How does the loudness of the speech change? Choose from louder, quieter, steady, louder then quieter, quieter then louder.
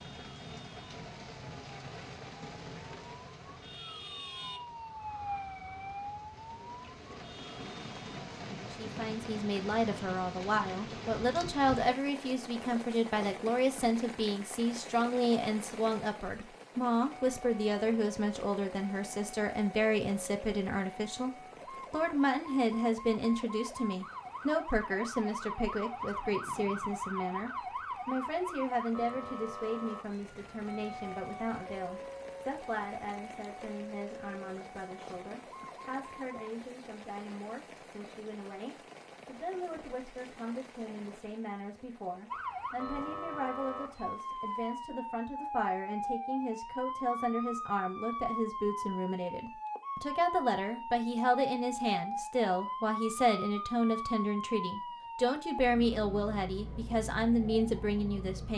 quieter then louder.